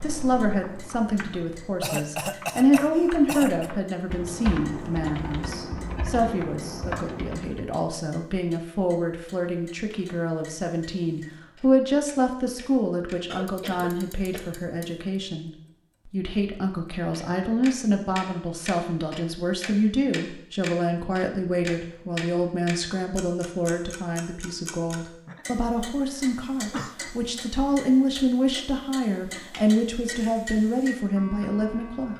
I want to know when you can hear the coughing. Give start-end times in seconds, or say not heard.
1.8-3.7, 13.2-14.6, 25.2-26.9.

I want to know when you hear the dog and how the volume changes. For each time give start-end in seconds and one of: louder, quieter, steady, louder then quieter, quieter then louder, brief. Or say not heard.
not heard.